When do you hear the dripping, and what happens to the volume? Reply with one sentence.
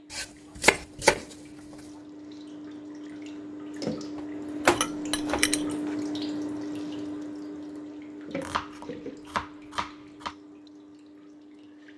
You can hear the dripping from 0.0 to 11.9 s, getting louder then quieter.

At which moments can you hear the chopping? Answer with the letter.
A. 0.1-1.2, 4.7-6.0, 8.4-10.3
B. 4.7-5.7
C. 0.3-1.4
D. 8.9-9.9
A.